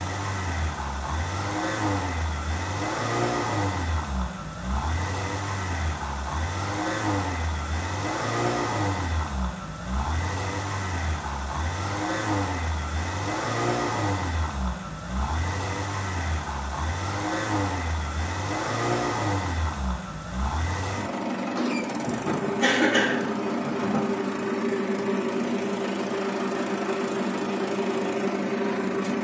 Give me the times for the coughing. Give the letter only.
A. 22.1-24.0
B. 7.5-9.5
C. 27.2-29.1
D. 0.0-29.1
A.